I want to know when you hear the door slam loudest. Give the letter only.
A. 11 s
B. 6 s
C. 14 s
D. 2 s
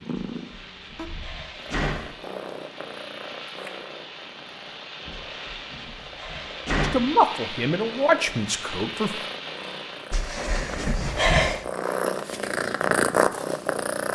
A.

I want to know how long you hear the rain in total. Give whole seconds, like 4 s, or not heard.
10 s.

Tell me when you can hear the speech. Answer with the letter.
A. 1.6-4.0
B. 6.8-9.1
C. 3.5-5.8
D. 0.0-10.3
B.